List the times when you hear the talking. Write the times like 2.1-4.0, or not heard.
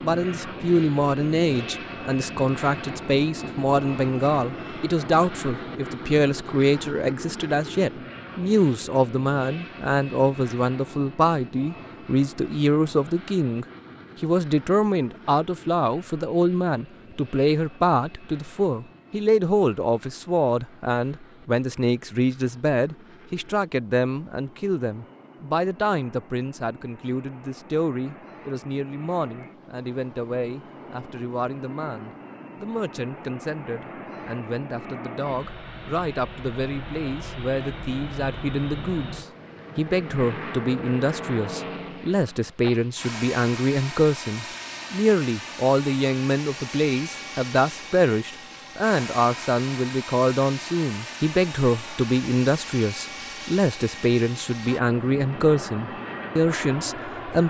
0.0-57.4.